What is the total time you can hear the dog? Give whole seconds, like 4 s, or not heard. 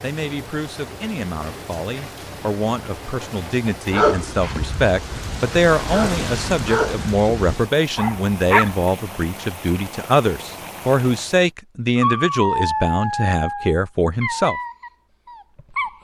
9 s.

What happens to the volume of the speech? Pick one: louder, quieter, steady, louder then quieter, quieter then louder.
louder.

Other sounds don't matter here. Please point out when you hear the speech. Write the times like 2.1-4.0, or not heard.
0.0-14.6.